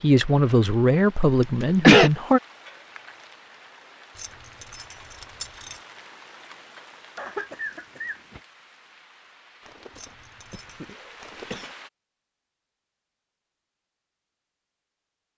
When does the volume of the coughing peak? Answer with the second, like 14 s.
2 s.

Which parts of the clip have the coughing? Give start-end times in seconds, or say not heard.
1.4-2.1, 7.2-8.4, 10.5-11.7.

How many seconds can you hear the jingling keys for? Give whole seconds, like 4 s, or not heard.
3 s.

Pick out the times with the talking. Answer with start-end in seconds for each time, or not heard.
0.0-2.4.